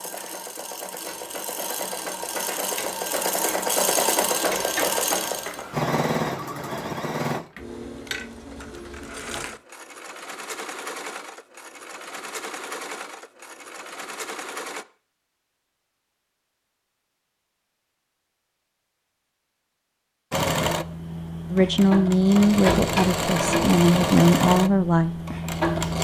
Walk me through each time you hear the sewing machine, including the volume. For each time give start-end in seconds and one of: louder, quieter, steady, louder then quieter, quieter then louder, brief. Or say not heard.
0.0-14.8 louder then quieter
20.3-25.9 louder then quieter.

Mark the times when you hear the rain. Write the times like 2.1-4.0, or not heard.
not heard.